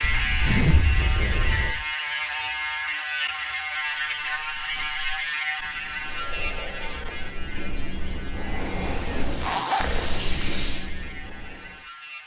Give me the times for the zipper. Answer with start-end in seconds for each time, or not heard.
0.0-1.9, 8.9-10.8.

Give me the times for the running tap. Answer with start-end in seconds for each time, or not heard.
9.1-10.9.